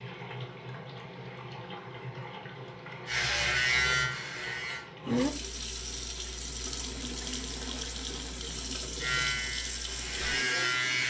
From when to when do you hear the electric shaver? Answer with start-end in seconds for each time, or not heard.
3.0-4.8, 9.0-11.0.